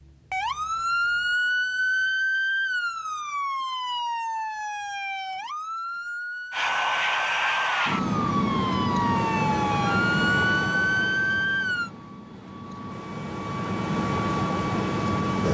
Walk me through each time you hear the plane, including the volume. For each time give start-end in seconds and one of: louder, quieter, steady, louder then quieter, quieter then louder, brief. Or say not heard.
6.5-15.4 quieter then louder.